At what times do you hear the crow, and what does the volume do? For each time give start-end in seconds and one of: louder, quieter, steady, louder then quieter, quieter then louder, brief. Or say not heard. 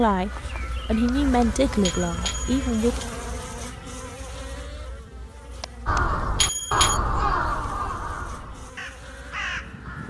5.8-10.0 quieter then louder.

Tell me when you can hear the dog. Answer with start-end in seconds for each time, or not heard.
not heard.